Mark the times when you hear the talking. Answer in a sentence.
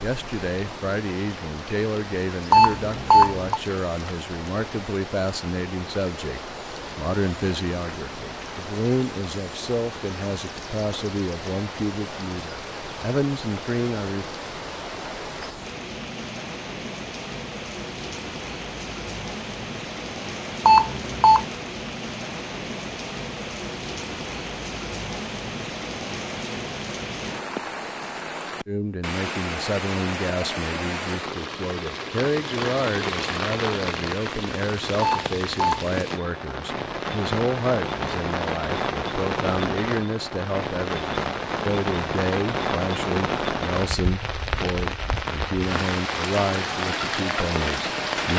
You can hear the talking from 0.0 to 14.2 s and from 28.6 to 48.3 s.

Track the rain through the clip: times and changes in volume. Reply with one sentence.
You can hear the rain from 0.0 to 48.3 s, getting louder.